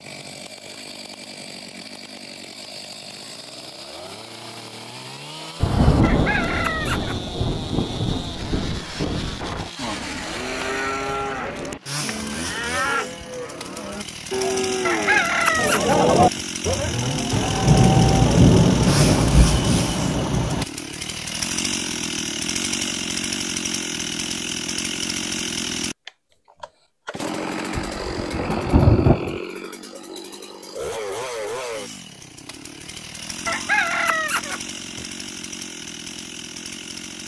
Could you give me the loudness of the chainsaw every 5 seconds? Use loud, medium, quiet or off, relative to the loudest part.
medium, medium, medium, loud, loud, loud, medium, medium.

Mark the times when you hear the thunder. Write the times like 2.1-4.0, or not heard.
5.6-9.7, 17.3-20.6, 27.8-29.4.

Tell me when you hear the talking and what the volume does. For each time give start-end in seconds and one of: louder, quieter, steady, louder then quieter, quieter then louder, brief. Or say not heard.
not heard.